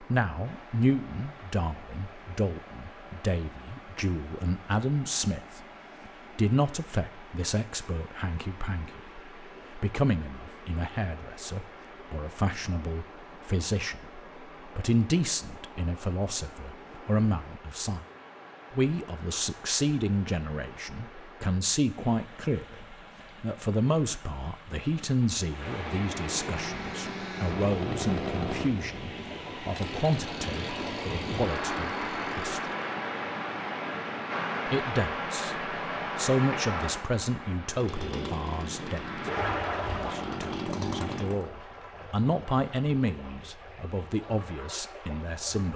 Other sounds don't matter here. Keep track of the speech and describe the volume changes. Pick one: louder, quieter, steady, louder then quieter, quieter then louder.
steady.